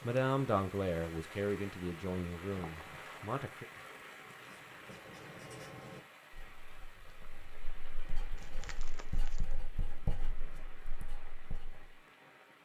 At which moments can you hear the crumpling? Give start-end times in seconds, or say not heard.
2.5-3.3, 8.3-9.6.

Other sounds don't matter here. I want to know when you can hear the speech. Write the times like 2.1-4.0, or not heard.
0.0-3.6.